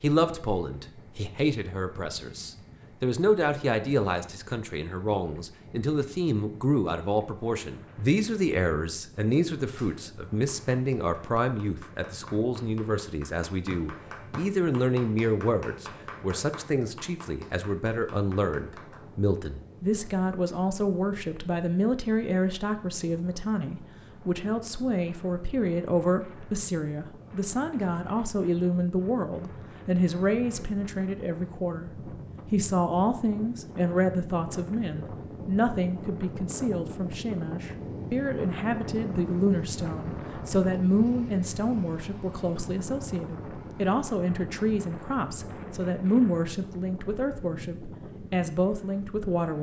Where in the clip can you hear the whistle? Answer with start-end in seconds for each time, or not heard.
13.7-14.4.